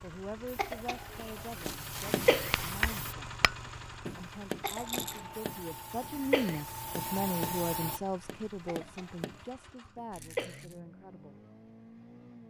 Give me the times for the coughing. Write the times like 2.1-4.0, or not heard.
0.6-1.3, 2.1-2.6, 4.6-5.3, 6.2-6.7, 8.7-9.5, 10.2-10.7.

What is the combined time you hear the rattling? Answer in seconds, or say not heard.
2 s.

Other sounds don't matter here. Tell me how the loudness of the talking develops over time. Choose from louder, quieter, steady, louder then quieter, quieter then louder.
louder then quieter.